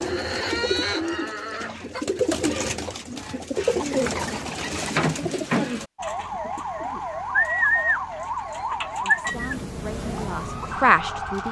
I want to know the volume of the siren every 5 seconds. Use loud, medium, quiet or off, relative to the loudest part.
off, loud, loud.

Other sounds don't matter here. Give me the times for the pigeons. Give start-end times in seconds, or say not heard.
0.0-9.6.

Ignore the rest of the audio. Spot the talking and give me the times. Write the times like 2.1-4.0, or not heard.
9.0-11.4.